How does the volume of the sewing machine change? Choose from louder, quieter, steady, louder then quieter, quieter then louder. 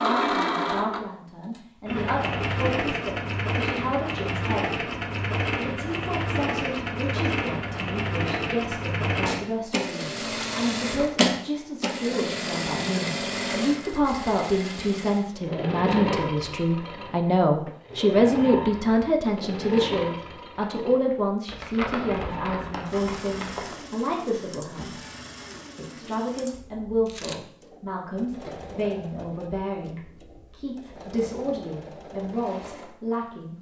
quieter.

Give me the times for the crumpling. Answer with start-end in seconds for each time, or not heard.
21.4-23.8.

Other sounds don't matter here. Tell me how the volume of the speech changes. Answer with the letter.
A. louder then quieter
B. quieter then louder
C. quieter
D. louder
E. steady
A.